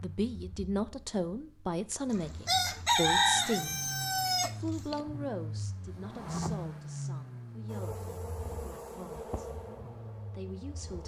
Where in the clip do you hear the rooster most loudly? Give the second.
3 s.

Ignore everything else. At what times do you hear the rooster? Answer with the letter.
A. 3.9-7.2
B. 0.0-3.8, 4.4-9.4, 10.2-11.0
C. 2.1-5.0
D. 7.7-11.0
C.